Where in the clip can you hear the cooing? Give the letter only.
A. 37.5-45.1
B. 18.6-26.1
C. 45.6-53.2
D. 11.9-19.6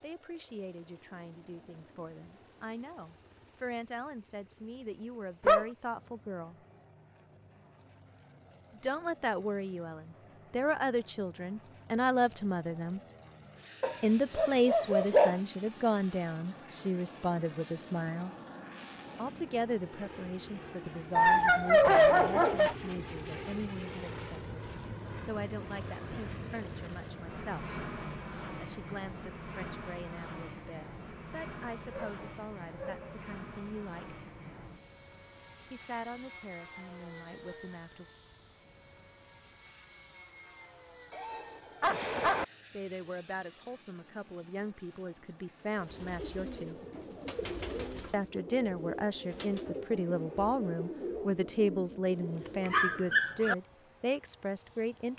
C.